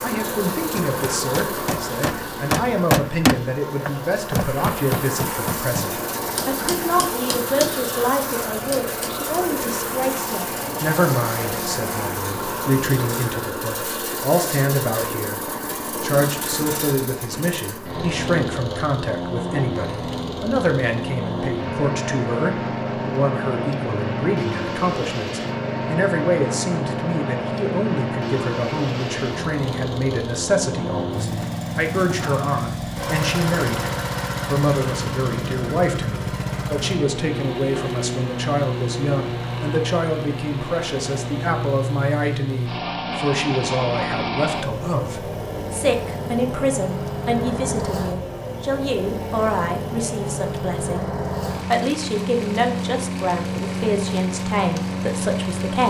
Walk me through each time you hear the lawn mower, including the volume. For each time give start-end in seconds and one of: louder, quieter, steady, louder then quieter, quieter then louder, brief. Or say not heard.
0.0-55.8 steady.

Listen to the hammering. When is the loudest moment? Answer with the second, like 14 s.
3 s.